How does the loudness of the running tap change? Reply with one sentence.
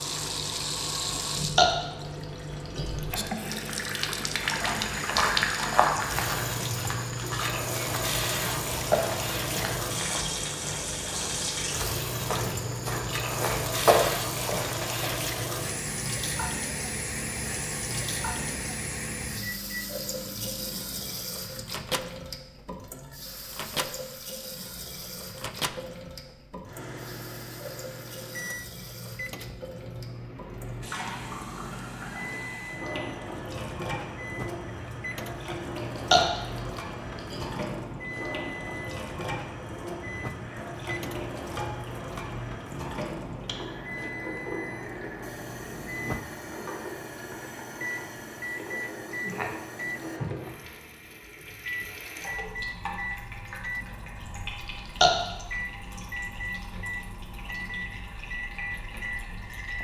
The volume of the running tap goes down.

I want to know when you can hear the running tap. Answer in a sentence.
The running tap can be heard from 0.0 to 59.8 s.